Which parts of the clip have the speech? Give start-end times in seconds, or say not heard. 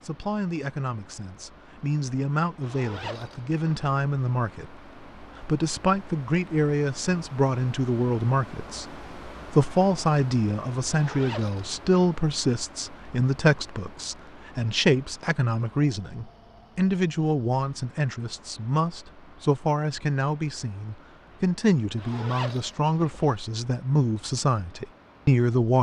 0.0-25.7.